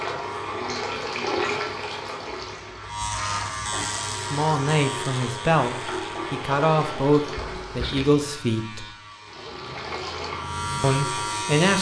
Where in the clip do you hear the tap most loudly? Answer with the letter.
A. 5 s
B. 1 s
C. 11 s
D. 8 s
B.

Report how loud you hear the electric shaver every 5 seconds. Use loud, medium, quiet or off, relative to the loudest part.
loud, medium, loud.